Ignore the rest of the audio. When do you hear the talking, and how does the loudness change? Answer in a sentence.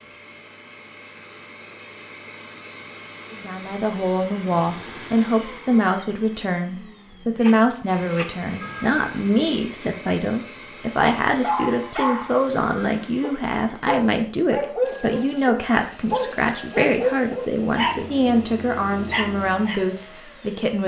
You can hear the talking from 3.3 to 20.8 s, at a steady volume.